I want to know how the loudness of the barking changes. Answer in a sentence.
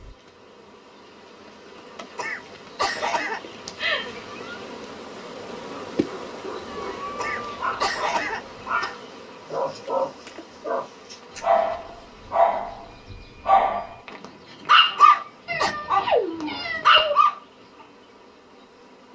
The loudness of the barking goes up.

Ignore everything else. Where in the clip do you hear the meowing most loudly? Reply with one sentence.
The loudest moment of the meowing is at 16 seconds.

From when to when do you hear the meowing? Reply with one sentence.
You can hear the meowing from 3.8 to 4.5 s, from 6.7 to 8.9 s and from 15.4 to 17.1 s.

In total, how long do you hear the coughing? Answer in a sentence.
The coughing can be heard for 4 seconds in total.